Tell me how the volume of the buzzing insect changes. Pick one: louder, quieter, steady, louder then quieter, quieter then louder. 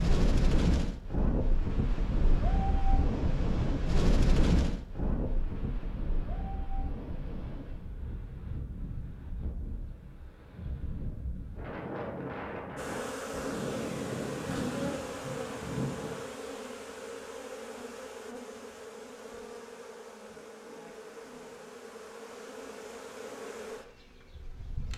quieter.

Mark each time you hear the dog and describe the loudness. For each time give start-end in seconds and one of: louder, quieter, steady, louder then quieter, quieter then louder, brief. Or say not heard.
not heard.